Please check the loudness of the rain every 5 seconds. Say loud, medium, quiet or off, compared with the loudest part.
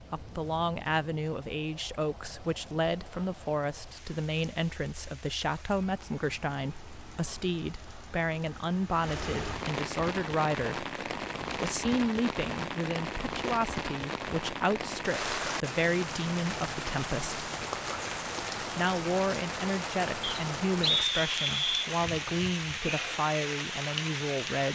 quiet, medium, loud, loud, loud.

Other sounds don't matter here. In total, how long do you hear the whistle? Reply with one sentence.
The whistle can be heard for 2 seconds in total.